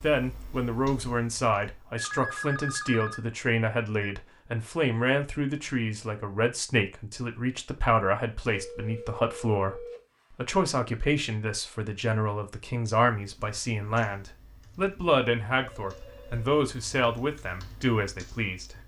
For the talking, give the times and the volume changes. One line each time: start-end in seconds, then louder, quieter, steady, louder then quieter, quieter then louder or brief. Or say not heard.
0.0-18.8 steady.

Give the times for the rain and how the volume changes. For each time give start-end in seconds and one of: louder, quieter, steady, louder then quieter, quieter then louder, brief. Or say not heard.
not heard.